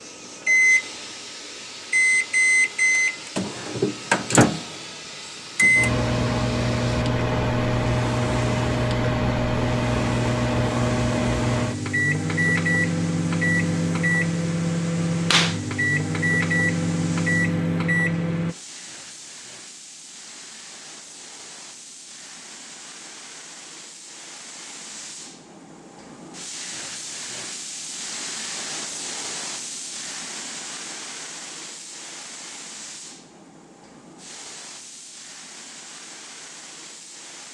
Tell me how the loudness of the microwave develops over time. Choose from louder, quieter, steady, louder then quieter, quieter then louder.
steady.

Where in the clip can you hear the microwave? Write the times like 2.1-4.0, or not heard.
0.1-18.6.